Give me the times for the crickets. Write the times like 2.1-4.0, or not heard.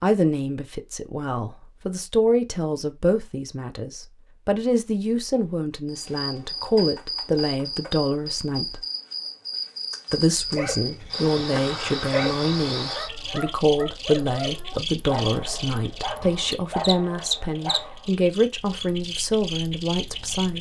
5.8-20.5.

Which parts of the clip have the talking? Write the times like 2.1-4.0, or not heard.
0.0-8.8, 10.1-20.5.